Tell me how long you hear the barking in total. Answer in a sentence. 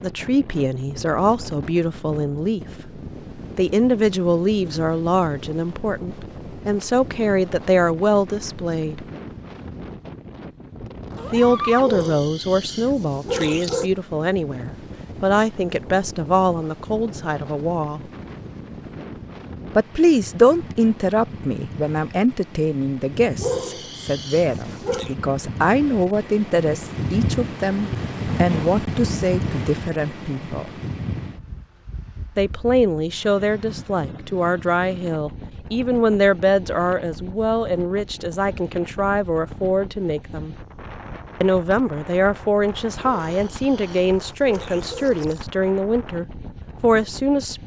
The barking can be heard for 6 seconds in total.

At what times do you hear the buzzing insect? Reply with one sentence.
You can't hear the buzzing insect here.